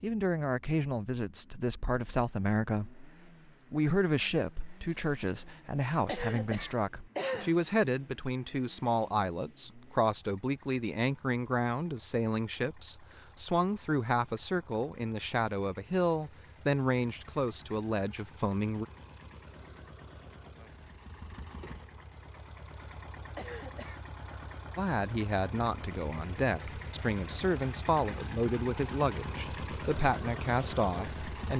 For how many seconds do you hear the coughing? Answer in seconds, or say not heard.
2 s.